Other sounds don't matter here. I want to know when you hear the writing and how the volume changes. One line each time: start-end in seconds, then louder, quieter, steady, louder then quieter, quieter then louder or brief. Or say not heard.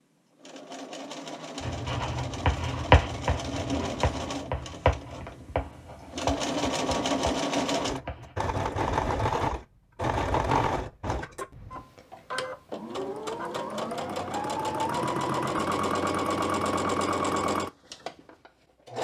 1.6-8.3 quieter.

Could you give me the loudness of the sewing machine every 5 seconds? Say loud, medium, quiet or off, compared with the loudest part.
medium, loud, loud, loud.